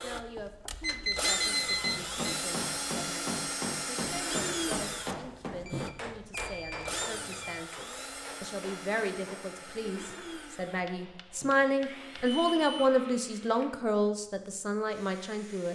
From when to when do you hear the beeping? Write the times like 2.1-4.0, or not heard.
0.8-2.1, 5.7-7.7, 12.2-12.9.